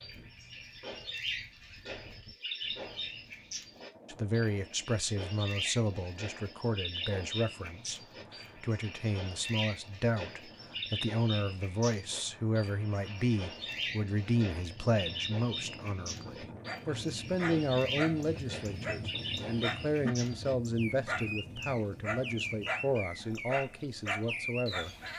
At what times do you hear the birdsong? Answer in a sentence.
You can hear the birdsong from 0.0 to 25.1 s.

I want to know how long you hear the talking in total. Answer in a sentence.
You can hear the talking for 21 seconds altogether.